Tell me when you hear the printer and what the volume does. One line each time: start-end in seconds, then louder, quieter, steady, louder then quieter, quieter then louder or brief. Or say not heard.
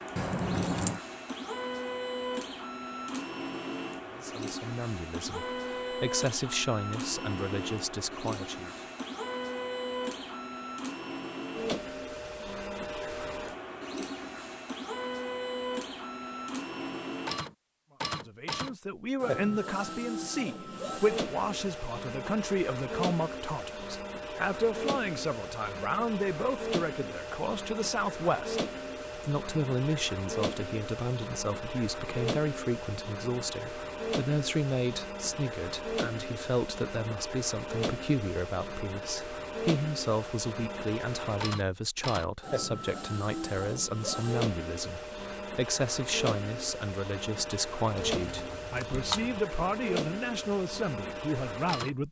0.0-52.0 steady.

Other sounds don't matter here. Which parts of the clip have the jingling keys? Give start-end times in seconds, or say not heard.
0.1-1.0, 48.0-49.4.